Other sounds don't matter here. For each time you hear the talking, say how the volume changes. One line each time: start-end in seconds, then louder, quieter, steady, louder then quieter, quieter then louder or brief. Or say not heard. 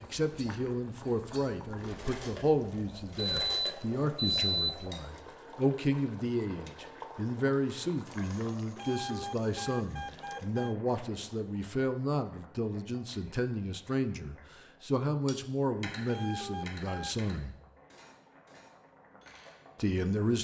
0.0-17.6 steady
19.8-20.3 brief.